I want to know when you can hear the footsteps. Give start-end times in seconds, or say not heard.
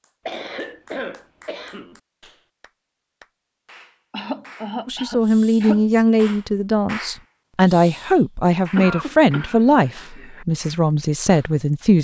not heard.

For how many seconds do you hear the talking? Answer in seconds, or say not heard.
7 s.